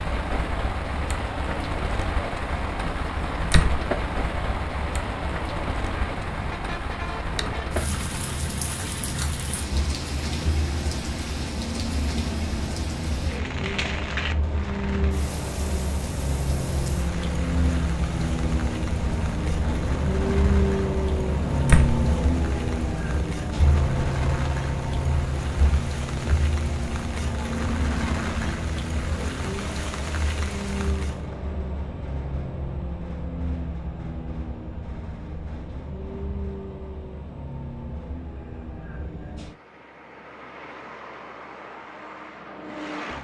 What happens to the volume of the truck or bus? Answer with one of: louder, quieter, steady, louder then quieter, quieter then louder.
louder then quieter.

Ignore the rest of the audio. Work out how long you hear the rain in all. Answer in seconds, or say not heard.
31 s.